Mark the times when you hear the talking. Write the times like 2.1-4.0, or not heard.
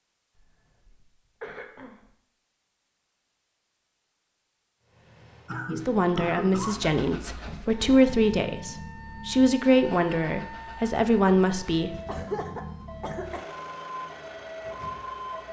5.7-11.9.